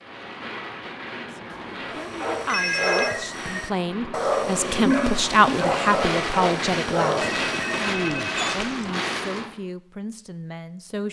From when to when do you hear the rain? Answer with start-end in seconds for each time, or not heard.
0.0-9.5.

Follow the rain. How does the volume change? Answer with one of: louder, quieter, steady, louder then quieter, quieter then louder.
louder.